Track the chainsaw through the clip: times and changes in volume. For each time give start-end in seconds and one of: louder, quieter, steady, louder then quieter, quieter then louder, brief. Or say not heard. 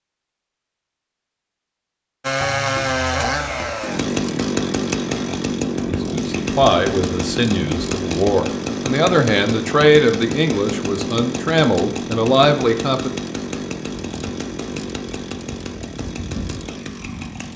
2.2-17.5 quieter.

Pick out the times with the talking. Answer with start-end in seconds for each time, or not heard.
5.8-13.1.